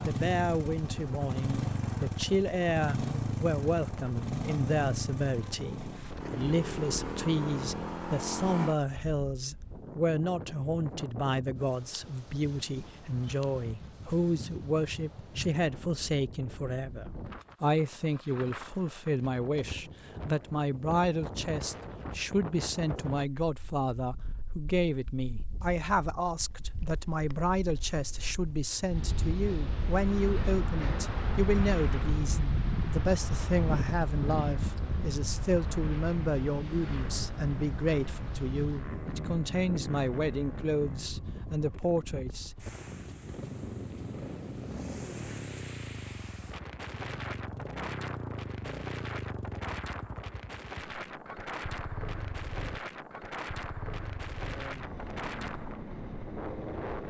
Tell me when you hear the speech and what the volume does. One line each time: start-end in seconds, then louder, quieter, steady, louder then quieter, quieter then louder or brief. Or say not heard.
0.0-42.5 steady.